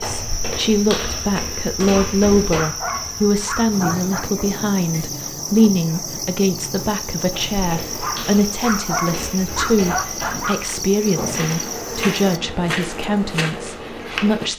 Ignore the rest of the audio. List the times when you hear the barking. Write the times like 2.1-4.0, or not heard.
1.9-4.3, 8.0-10.8.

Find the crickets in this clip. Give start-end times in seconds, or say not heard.
0.0-12.4.